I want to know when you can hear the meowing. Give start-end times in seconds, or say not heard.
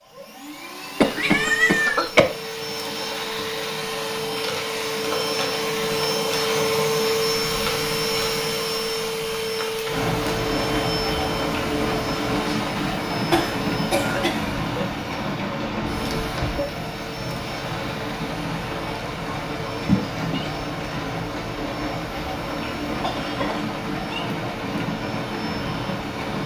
1.1-2.1, 19.8-20.5.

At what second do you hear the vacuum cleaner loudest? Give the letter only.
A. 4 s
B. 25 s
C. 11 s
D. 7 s
D.